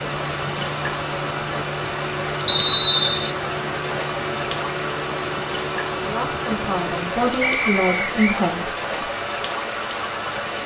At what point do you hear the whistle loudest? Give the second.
3 s.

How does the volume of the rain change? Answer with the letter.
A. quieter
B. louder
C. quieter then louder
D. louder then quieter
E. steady
E.